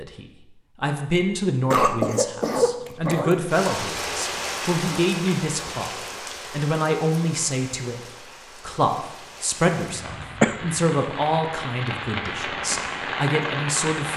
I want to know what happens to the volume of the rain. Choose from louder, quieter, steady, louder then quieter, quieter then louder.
quieter then louder.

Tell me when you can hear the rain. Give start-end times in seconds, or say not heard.
3.5-14.1.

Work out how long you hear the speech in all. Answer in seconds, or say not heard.
14 s.